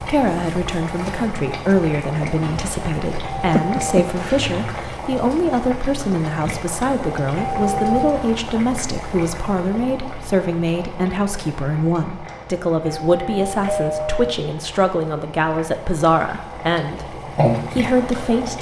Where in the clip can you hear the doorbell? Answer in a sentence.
The doorbell can be heard from 3.2 to 4.1 s, from 7.3 to 8.2 s and from 12.8 to 14.3 s.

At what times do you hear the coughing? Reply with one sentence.
The coughing can be heard from 3.5 to 4.5 s.